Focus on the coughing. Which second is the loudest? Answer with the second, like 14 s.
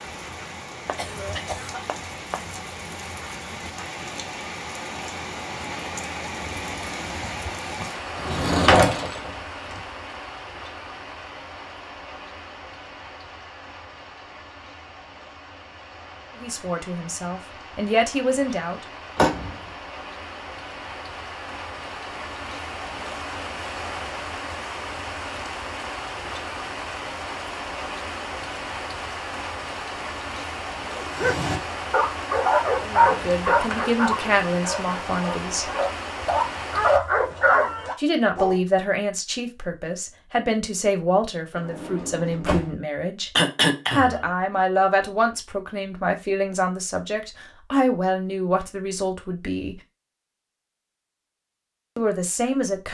44 s.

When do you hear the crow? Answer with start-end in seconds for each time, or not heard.
not heard.